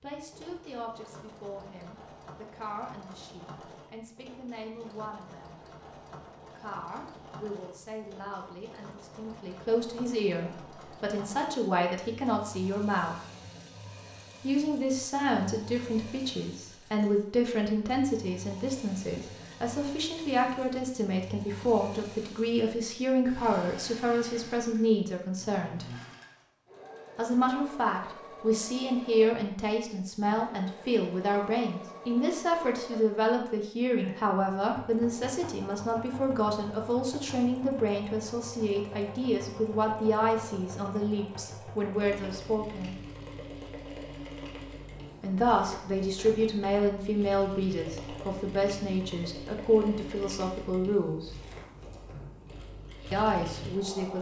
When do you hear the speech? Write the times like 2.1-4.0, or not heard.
0.0-5.5, 6.5-13.2, 14.4-25.9, 27.1-43.0, 45.2-51.3, 53.1-54.1.